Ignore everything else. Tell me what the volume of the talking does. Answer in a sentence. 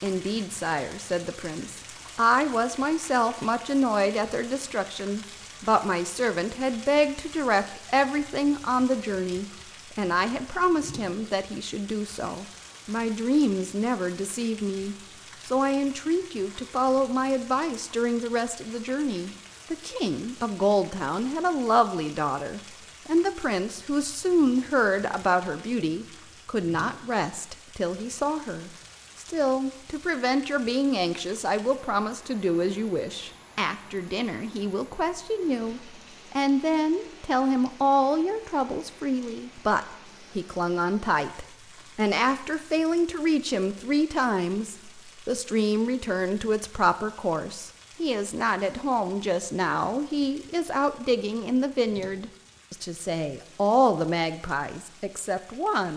The loudness of the talking stays about the same.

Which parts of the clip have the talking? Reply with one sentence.
You can hear the talking from 0.0 to 55.9 s.